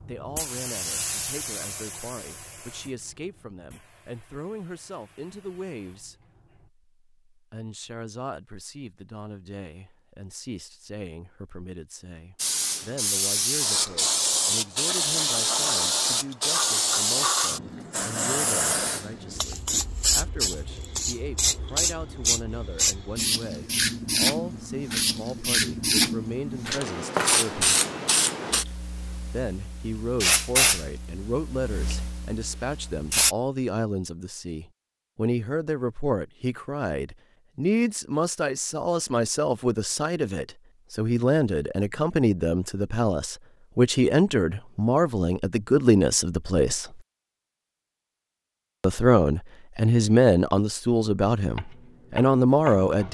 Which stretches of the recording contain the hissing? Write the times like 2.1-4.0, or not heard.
0.0-6.7, 12.4-33.4.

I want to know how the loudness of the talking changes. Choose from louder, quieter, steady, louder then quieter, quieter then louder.
louder.